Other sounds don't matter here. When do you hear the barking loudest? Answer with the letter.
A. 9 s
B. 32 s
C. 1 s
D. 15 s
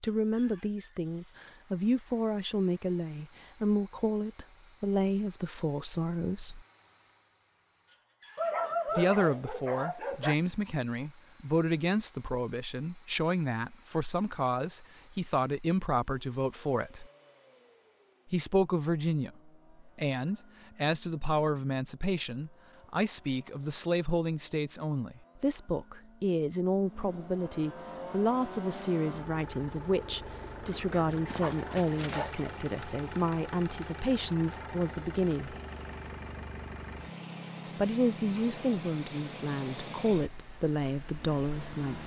A.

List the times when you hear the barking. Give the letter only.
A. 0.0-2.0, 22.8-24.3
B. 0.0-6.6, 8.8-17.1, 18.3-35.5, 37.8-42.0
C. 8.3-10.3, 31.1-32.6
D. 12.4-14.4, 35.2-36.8
C.